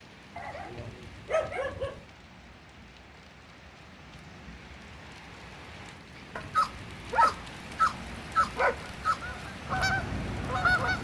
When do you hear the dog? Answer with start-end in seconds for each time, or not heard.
0.3-2.0, 6.3-9.2.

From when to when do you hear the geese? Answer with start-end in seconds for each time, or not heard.
8.7-10.9.